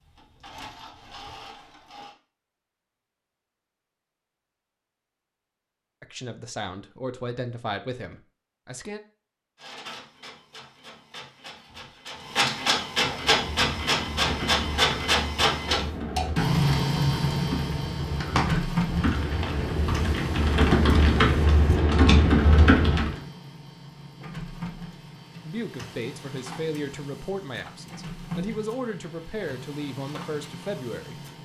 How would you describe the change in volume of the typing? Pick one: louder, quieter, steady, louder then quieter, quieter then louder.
louder.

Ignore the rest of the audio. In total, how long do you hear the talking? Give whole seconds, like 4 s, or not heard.
9 s.